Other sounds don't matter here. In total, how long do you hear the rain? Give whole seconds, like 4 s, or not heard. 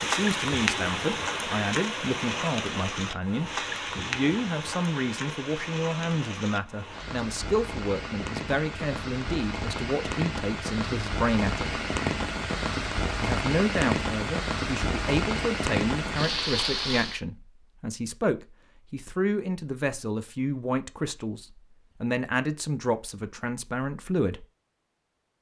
17 s.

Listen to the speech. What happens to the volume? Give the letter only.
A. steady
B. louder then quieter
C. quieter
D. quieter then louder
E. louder
A.